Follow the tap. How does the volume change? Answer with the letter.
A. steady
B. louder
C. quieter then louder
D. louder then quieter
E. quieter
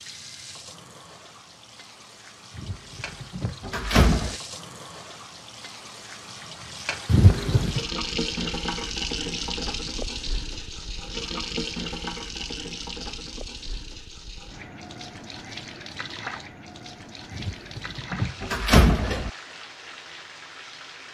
D.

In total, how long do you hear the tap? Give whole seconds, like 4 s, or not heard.
21 s.